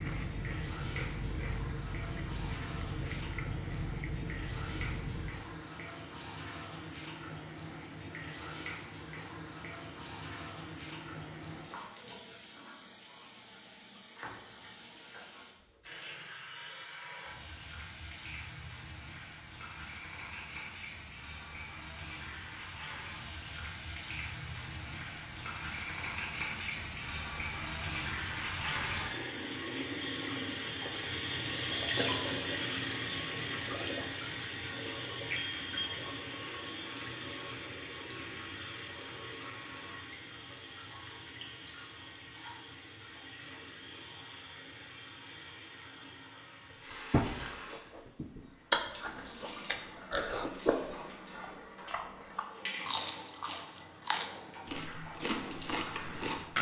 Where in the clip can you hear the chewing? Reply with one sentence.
You can hear the chewing from 0.0 to 5.5 s and from 46.9 to 56.5 s.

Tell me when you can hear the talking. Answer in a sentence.
The talking can't be heard in this clip.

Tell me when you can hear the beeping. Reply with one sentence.
The beeping can be heard from 35.4 to 36.0 s.